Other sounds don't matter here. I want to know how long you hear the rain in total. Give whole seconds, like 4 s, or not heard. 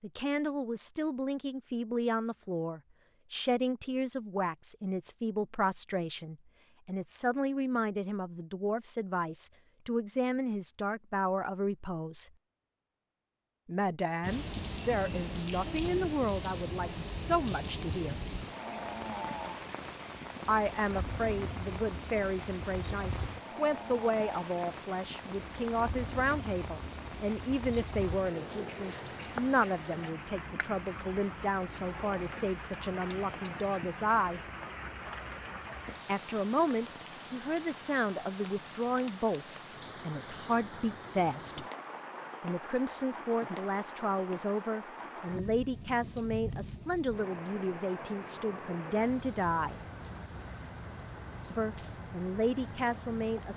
39 s.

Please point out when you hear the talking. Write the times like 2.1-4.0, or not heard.
0.0-12.3, 13.7-18.2, 20.4-34.4, 36.0-41.6, 42.4-49.8, 51.5-53.5.